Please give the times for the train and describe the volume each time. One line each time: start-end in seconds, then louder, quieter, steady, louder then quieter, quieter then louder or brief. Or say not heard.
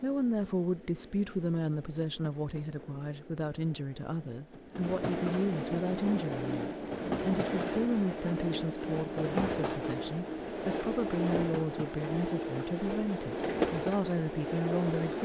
0.0-15.2 louder.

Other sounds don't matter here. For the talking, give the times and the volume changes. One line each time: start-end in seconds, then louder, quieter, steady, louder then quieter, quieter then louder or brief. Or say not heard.
0.0-15.2 steady.